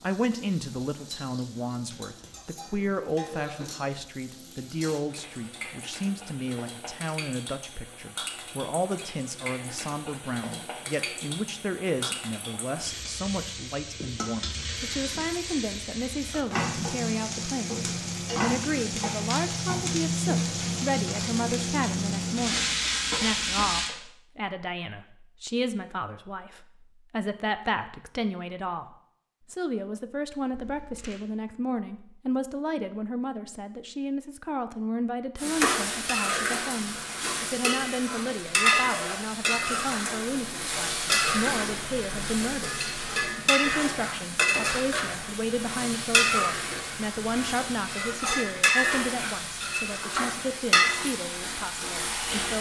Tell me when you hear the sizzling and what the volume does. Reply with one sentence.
The sizzling can be heard from 0.0 to 23.9 s, getting louder; and from 35.4 to 52.5 s, at a steady volume.